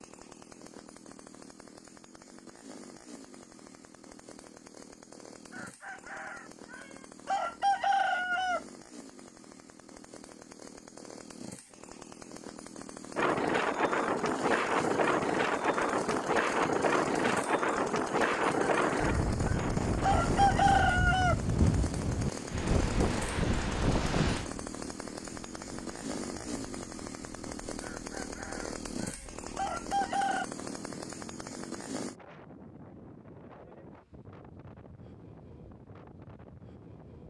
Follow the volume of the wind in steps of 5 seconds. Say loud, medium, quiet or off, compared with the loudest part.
off, off, loud, loud, loud, quiet, quiet, quiet.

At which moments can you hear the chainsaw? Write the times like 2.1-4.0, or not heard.
0.0-32.2.